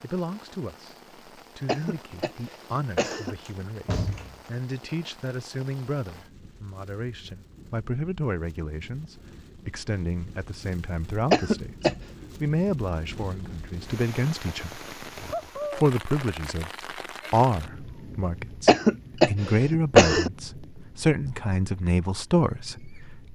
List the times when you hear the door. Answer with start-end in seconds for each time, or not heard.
3.0-4.4.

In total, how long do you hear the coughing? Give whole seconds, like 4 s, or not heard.
4 s.